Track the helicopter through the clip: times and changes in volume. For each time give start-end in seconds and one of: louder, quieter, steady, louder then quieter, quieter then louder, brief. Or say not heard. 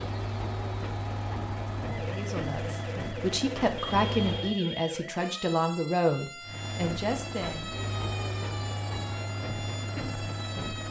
0.0-4.6 steady
6.4-10.8 steady.